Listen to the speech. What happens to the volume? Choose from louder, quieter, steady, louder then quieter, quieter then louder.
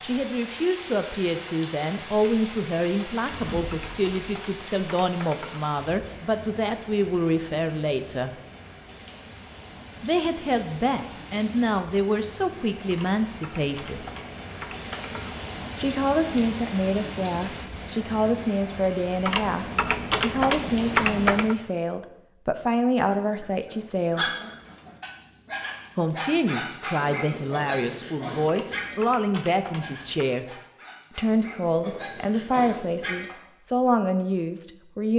steady.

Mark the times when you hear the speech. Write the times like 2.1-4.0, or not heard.
0.0-8.3, 10.0-14.1, 15.8-24.4, 25.9-35.1.